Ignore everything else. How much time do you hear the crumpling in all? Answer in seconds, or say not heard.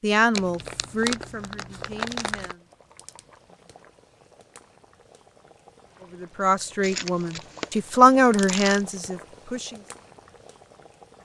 4 s.